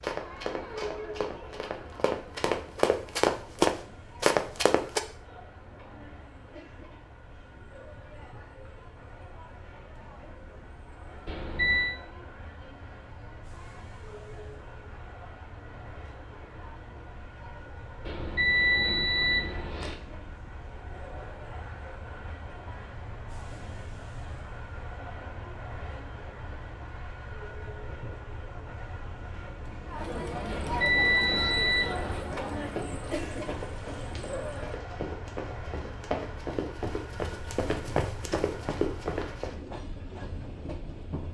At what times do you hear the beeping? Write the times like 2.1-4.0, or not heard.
11.2-11.9, 18.1-19.9, 30.4-32.2.